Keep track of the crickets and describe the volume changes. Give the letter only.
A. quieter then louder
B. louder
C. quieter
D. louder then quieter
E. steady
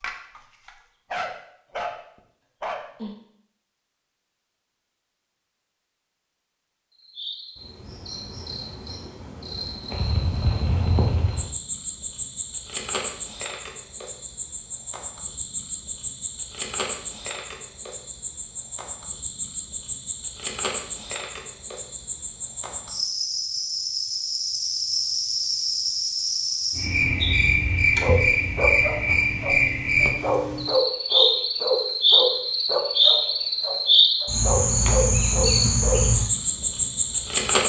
B.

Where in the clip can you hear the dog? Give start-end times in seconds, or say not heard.
0.0-1.9, 2.6-3.1, 28.0-36.0.